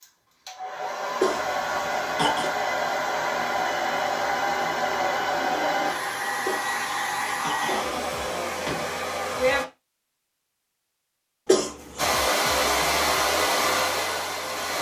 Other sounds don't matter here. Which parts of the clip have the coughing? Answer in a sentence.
The coughing can be heard from 1.2 to 2.5 s, from 6.5 to 8.2 s and from 11.4 to 12.2 s.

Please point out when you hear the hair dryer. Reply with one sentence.
The hair dryer can be heard from 0.0 to 9.7 s and from 11.9 to 14.7 s.